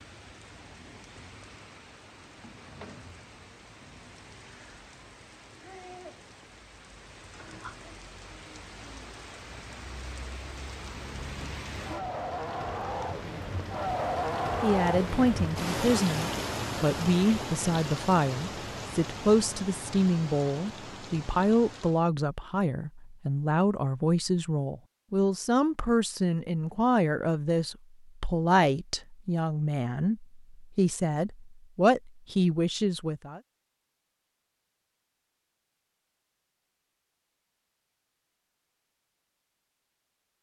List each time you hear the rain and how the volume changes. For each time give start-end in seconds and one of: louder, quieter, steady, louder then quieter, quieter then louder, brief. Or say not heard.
0.0-22.1 louder then quieter.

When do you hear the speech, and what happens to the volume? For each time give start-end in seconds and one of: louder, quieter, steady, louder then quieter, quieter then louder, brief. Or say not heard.
14.6-33.4 steady.